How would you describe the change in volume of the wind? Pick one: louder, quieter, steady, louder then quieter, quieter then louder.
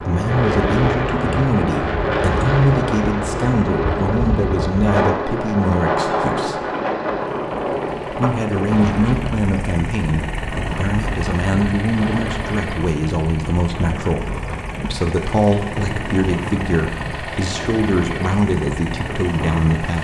quieter.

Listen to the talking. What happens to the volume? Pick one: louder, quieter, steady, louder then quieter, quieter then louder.
steady.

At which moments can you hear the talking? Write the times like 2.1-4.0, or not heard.
0.0-6.6, 8.1-19.9.